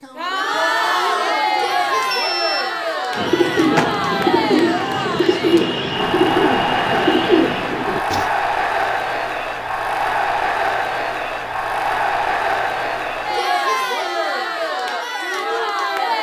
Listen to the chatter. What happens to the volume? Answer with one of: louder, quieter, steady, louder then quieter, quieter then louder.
steady.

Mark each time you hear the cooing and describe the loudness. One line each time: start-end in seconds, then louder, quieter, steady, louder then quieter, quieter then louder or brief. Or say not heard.
3.1-8.2 steady.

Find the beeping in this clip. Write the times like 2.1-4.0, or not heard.
1.6-2.8.